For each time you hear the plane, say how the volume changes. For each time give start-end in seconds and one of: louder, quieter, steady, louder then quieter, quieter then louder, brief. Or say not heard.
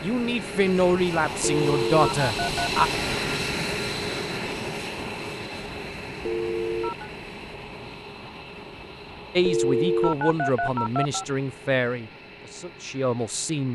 0.0-13.6 quieter.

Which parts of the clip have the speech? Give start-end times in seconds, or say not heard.
0.0-2.9, 9.3-13.6.